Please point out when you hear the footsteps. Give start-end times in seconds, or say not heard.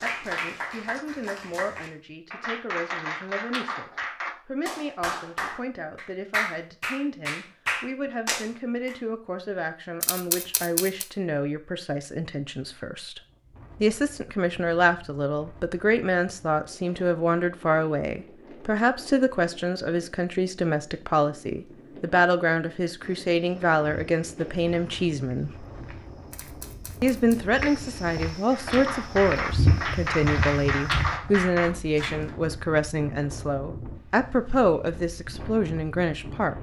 23.0-31.1.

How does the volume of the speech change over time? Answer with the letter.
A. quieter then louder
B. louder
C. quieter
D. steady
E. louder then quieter
B.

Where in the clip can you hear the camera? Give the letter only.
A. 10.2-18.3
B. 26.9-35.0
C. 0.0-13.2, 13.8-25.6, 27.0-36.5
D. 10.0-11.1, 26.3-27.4
D.